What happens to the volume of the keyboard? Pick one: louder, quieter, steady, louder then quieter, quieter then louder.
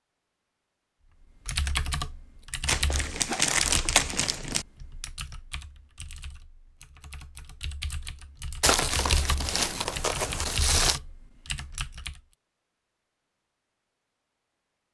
quieter then louder.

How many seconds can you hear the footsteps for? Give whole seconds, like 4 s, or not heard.
not heard.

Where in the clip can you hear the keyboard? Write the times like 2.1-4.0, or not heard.
1.4-12.2.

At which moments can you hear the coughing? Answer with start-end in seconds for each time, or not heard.
not heard.